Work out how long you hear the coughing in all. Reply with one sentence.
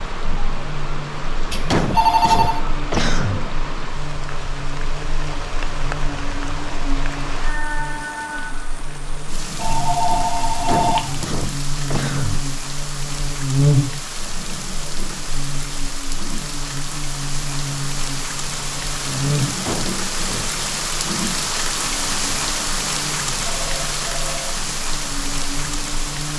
You can hear the coughing for 4 seconds altogether.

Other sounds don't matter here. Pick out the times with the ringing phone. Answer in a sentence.
You can hear the ringing phone from 1.5 to 2.6 s, from 9.6 to 11.3 s and from 23.4 to 24.6 s.